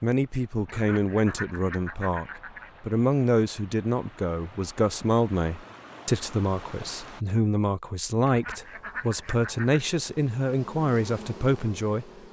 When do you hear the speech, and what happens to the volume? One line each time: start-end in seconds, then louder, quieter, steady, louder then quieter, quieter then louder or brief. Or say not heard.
0.0-12.1 steady.